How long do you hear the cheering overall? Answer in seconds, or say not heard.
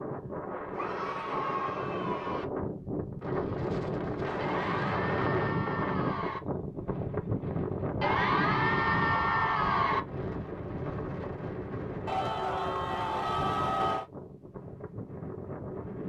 8 s.